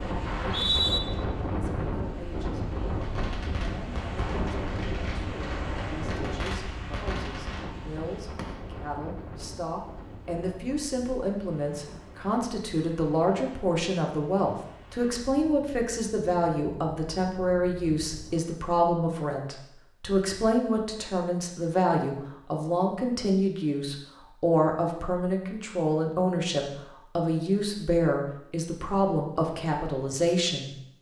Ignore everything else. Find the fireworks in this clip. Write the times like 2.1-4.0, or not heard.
3.0-8.6.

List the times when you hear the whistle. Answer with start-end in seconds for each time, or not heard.
0.2-1.0.